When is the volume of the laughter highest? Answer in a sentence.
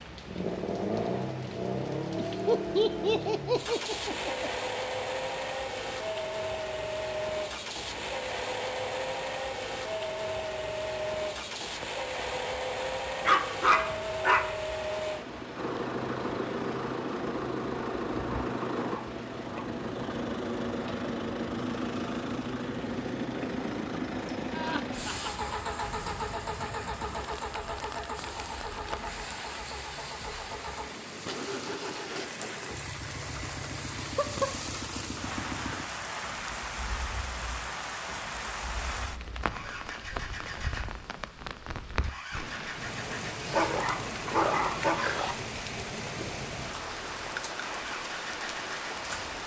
The volume of the laughter peaks at 3 seconds.